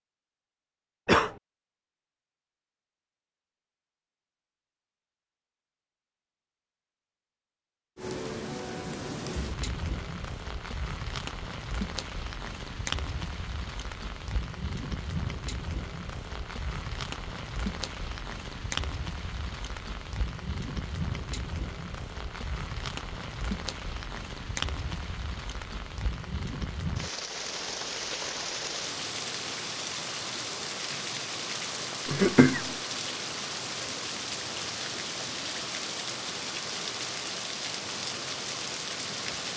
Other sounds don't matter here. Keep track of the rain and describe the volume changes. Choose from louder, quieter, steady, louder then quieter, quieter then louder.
steady.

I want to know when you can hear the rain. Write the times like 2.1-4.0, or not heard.
8.0-39.5.